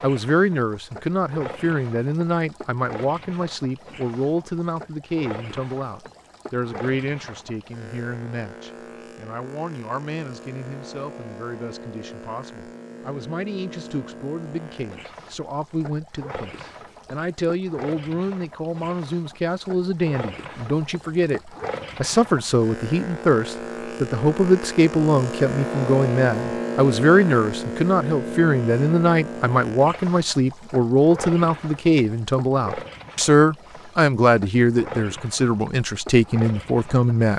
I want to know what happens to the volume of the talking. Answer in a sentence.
The volume of the talking goes down, then up.